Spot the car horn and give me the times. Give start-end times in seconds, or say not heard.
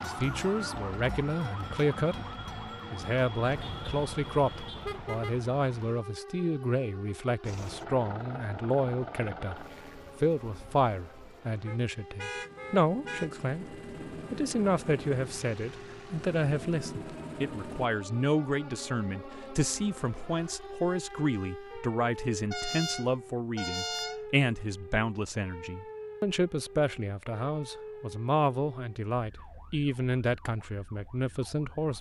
3.4-5.4, 11.7-13.3, 22.5-24.2.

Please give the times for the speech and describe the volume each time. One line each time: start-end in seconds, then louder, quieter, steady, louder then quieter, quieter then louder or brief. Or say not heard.
0.0-2.1 brief
2.9-13.7 steady
14.3-31.9 steady.